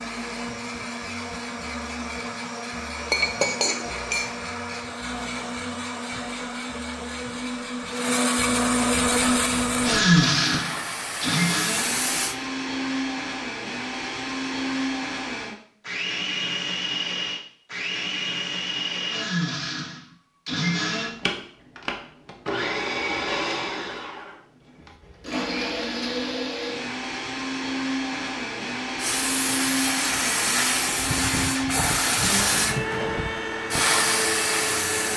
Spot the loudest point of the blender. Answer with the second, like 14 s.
10 s.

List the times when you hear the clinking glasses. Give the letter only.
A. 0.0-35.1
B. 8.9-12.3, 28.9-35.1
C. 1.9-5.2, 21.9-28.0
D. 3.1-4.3
D.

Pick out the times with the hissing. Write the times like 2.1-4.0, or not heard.
8.9-12.3, 28.9-35.1.